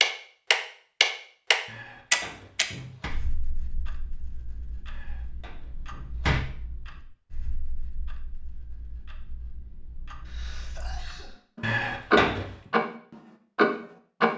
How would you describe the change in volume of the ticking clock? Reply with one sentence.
The loudness of the ticking clock goes down, then up.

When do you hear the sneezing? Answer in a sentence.
You can hear the sneezing from 10.2 to 11.4 s.